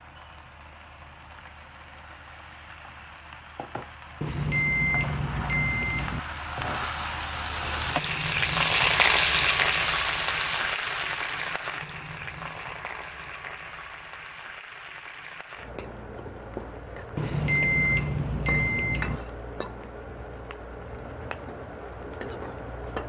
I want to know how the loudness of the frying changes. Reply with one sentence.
The volume of the frying goes up, then down.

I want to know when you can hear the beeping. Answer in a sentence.
You can hear the beeping from 4.2 to 6.2 s and from 17.1 to 19.2 s.